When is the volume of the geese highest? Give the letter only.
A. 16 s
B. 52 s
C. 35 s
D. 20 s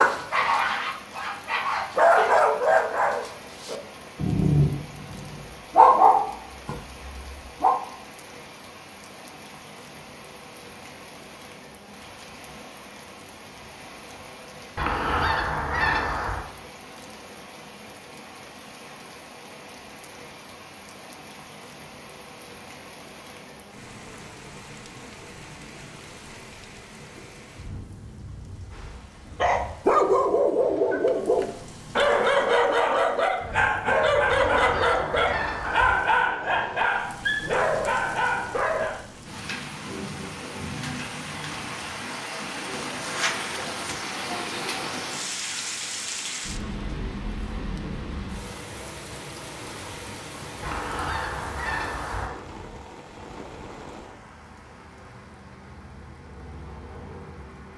A.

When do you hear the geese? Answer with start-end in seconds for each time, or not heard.
14.8-16.4, 34.3-36.0, 50.6-52.4.